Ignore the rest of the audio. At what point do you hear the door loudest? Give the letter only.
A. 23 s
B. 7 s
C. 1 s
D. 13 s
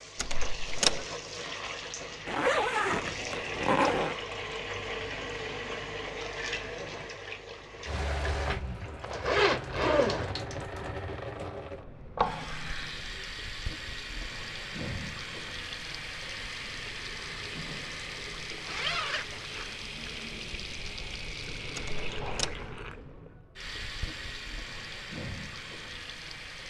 C.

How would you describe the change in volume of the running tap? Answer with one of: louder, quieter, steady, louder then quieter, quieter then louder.
steady.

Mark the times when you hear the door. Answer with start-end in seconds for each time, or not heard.
0.1-1.1, 21.8-22.6.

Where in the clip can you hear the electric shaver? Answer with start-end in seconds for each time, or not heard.
not heard.